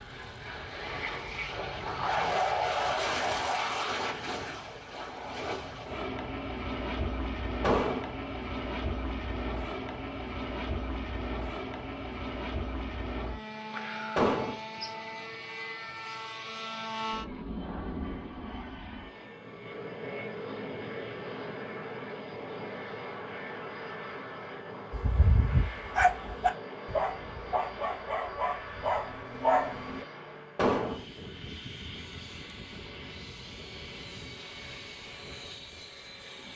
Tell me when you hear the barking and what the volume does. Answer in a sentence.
The barking can be heard from 24.9 to 30.1 s, getting quieter then louder.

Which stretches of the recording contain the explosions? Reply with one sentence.
The explosions can be heard from 7.6 to 8.1 s, from 14.2 to 14.6 s and from 30.6 to 31.0 s.